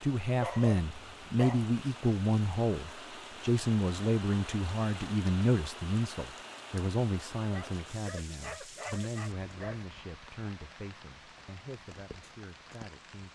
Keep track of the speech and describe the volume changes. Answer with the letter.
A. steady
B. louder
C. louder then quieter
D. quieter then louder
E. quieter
E.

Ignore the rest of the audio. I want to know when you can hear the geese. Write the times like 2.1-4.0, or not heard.
not heard.